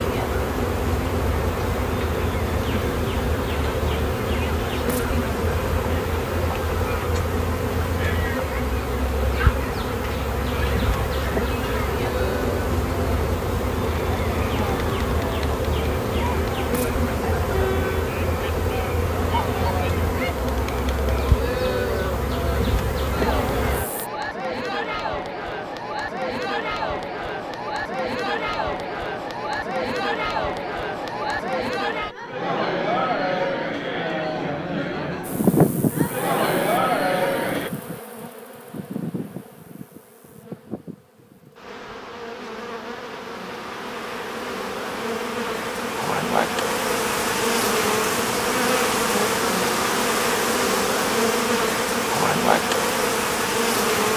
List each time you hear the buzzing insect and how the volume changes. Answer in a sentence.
You can hear the buzzing insect from 0.0 to 24.1 s, at a steady volume; and from 35.2 to 54.1 s, getting quieter then louder.